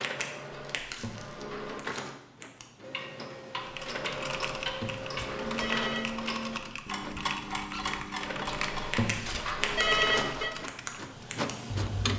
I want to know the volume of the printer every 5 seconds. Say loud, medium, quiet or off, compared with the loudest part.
medium, medium, loud.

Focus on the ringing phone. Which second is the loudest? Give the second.
10 s.